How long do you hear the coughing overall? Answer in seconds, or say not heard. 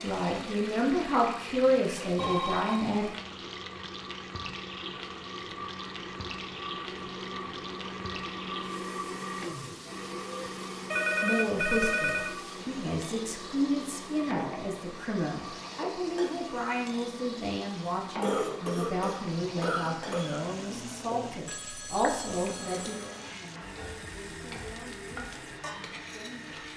3 s.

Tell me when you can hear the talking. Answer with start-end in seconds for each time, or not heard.
0.0-3.0, 11.2-26.6.